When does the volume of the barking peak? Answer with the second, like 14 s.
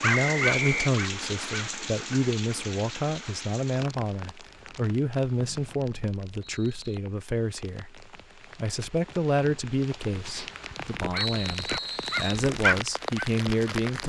13 s.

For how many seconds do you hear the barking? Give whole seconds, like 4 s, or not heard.
4 s.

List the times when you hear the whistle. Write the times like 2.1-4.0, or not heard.
0.1-0.9, 5.3-7.0, 11.2-12.4.